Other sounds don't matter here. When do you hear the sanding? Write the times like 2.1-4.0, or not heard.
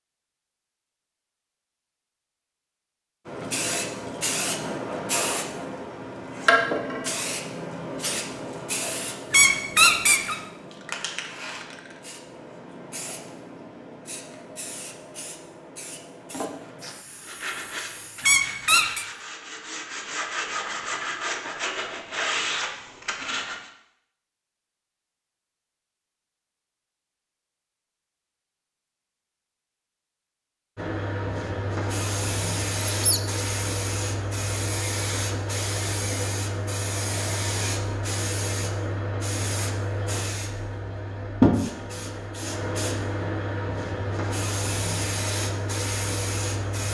17.2-23.7.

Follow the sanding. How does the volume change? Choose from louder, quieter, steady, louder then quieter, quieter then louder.
louder.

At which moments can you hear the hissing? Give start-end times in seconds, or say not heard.
3.2-18.3, 30.8-46.9.